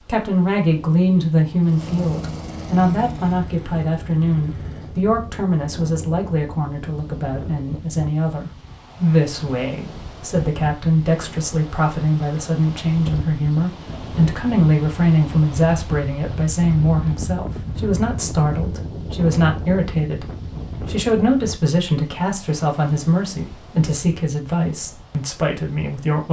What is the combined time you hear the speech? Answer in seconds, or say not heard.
26 s.